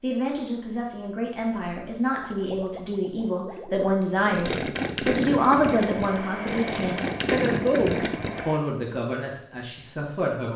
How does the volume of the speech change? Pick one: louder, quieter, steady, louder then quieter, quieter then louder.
louder then quieter.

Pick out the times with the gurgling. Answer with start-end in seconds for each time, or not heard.
2.0-8.4.